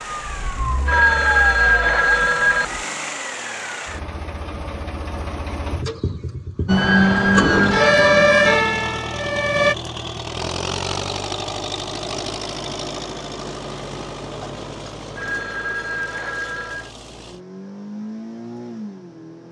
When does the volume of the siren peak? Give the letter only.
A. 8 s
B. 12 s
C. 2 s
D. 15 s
A.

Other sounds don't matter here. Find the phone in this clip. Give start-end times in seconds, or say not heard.
0.8-2.6, 6.8-8.6, 15.2-16.9.